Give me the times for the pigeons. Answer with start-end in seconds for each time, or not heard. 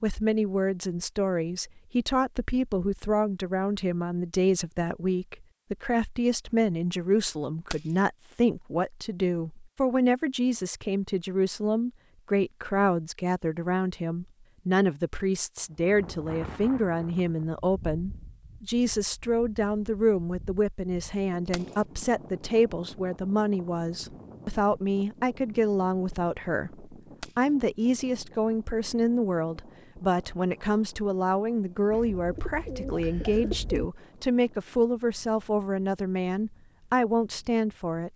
31.9-33.9.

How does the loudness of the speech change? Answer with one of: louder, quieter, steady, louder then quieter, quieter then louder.
steady.